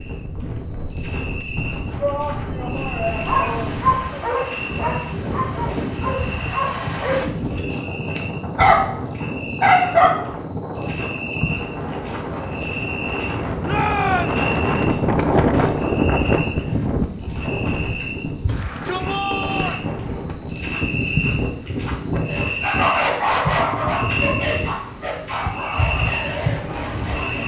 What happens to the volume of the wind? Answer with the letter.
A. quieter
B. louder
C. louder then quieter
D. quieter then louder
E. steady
C.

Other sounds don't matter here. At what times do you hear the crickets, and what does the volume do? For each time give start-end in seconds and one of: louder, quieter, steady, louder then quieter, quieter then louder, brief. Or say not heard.
0.0-27.4 louder.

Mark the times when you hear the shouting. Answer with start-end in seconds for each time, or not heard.
1.9-4.5, 13.7-14.4, 18.4-19.9.